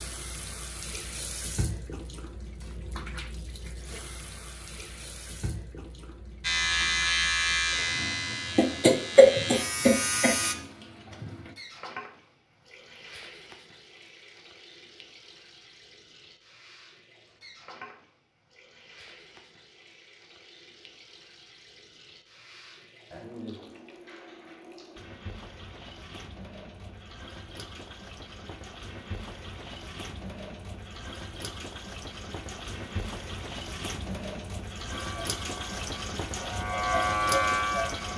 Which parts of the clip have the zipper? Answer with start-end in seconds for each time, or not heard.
not heard.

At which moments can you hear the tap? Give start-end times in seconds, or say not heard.
0.0-38.1.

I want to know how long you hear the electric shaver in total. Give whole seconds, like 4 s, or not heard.
7 s.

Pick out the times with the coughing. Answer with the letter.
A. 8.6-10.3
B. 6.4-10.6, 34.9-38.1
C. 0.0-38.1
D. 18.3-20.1
A.